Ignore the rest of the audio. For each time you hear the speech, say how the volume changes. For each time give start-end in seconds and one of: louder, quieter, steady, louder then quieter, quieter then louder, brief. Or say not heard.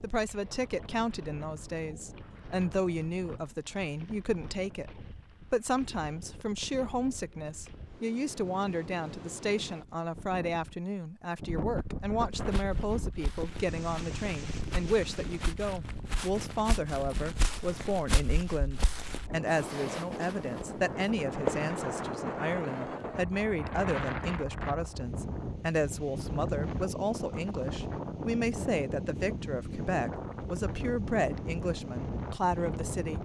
0.0-33.2 steady.